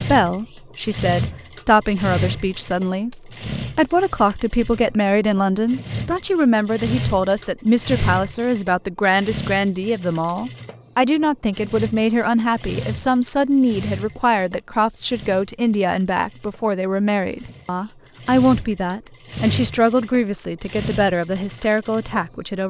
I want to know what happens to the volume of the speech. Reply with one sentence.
The loudness of the speech stays about the same.